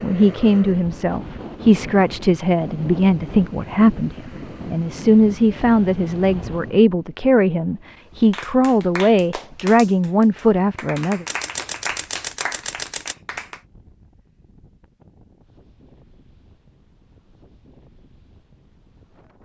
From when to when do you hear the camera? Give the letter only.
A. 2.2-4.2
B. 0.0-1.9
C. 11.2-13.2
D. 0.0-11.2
C.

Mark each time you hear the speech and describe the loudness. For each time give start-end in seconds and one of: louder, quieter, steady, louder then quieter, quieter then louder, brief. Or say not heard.
0.0-11.2 steady.